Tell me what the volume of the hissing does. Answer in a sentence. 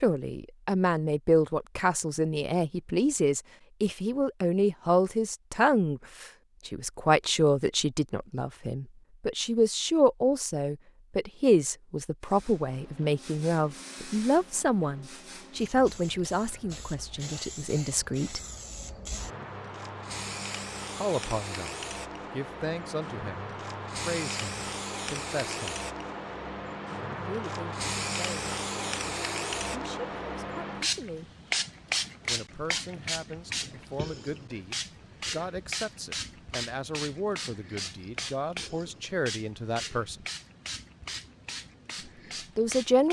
The loudness of the hissing goes up, then down.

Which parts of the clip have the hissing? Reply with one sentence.
You can hear the hissing from 12.2 to 43.0 s.